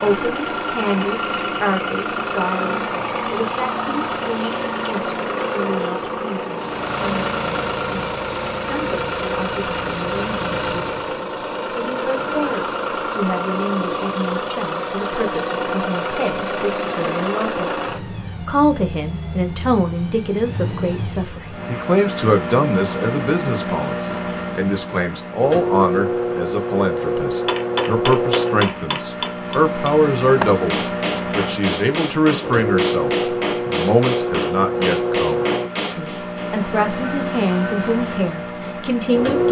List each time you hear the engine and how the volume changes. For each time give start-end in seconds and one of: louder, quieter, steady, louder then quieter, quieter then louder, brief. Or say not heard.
0.0-39.4 steady.